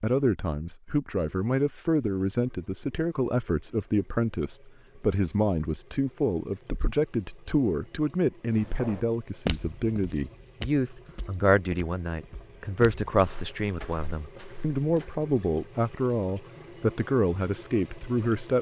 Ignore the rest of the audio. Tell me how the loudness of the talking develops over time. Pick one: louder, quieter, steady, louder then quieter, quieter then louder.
steady.